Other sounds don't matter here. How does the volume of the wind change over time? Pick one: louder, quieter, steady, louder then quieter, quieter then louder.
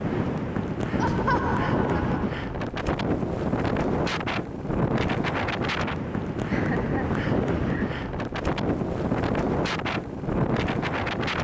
steady.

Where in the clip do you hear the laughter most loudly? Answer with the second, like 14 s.
1 s.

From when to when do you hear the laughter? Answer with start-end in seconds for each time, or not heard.
1.0-2.2, 6.5-7.9.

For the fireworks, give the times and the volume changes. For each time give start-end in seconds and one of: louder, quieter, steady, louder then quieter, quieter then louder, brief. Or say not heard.
not heard.